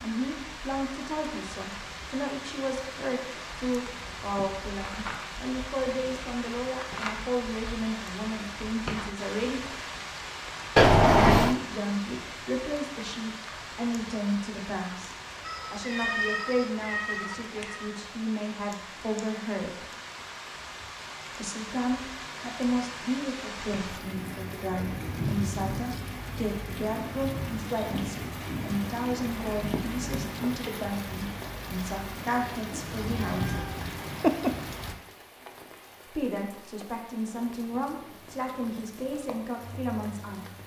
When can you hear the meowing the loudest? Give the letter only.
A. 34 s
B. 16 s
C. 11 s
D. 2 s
C.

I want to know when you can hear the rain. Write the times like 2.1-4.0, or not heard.
0.0-40.6.